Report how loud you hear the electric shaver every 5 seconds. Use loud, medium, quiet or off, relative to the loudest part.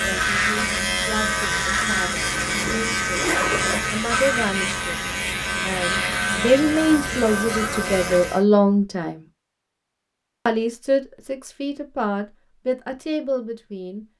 loud, loud, off.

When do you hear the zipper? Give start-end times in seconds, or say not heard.
2.2-3.8.